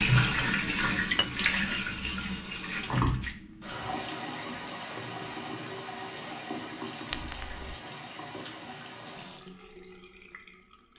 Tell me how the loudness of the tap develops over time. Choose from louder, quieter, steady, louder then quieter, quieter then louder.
quieter.